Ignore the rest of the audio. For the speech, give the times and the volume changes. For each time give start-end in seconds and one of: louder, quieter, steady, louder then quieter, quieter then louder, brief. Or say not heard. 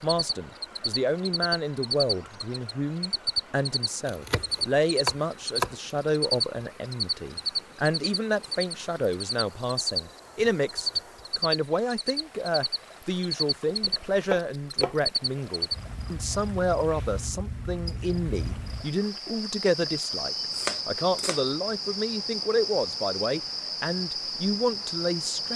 0.0-25.5 steady.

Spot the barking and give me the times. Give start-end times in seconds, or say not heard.
not heard.